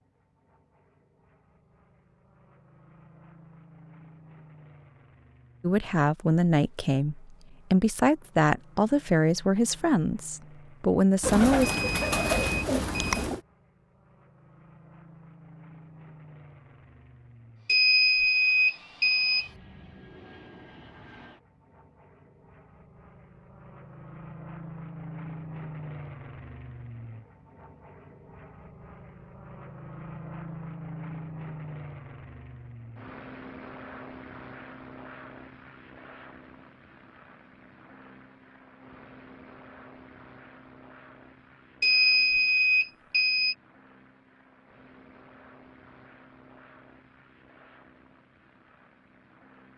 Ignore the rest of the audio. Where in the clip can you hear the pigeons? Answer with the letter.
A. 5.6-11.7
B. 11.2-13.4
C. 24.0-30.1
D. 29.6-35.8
B.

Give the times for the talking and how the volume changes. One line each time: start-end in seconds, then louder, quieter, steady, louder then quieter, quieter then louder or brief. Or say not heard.
5.6-11.7 steady.